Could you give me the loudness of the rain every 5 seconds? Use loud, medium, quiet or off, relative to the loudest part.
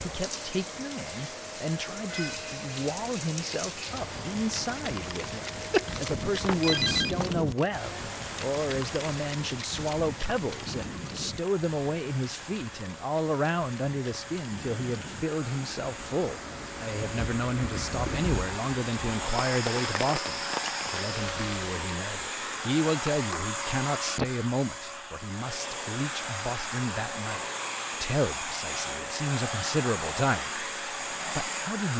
loud, loud, medium, loud, loud, off, off.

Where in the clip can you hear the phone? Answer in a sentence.
The phone can be heard from 5.7 to 7.3 s.